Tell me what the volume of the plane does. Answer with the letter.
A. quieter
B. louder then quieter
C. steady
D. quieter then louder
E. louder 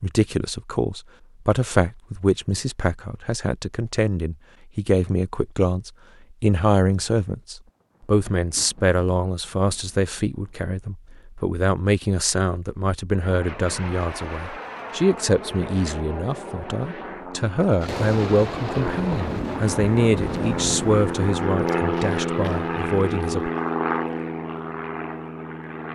E.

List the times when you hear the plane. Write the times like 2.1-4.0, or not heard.
13.2-25.9.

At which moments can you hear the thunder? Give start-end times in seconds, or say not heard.
7.7-10.7, 17.8-21.4.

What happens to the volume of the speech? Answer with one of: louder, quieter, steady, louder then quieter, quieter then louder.
steady.